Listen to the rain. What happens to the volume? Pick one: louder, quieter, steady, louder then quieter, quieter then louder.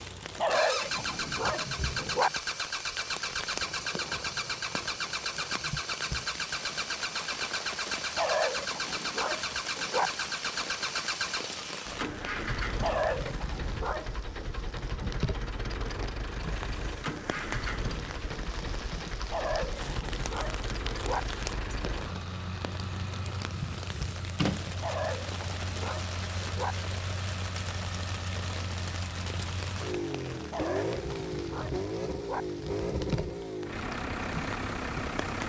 steady.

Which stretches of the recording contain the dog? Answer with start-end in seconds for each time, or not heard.
0.3-2.3, 8.2-10.1, 12.8-14.5, 19.3-21.2, 24.8-26.8, 30.5-32.5.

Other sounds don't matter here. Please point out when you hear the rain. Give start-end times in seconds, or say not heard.
0.0-35.4.